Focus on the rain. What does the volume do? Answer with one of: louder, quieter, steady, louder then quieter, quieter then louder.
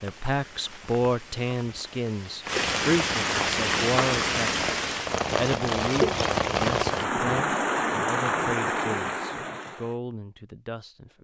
louder.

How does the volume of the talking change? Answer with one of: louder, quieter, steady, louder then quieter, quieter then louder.
quieter.